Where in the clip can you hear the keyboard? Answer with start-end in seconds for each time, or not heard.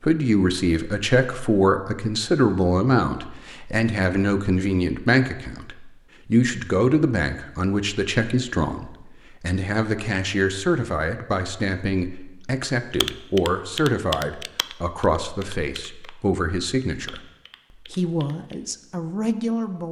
13.0-16.1, 17.1-18.6.